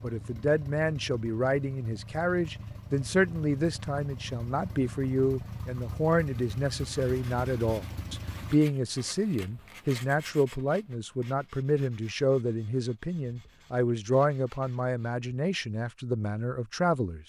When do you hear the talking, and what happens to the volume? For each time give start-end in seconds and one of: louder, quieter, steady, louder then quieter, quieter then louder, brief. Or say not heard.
0.0-17.2 steady.